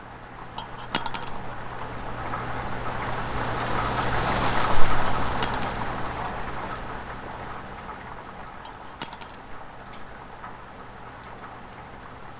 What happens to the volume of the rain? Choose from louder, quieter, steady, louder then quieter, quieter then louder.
louder then quieter.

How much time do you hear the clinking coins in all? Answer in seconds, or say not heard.
2 s.